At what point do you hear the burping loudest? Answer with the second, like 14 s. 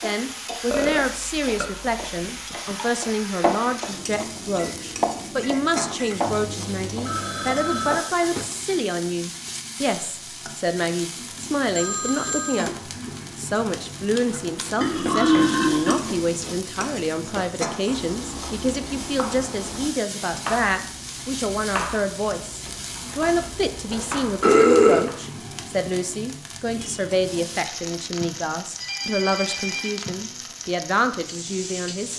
25 s.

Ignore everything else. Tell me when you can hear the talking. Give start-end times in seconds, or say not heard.
0.0-32.1.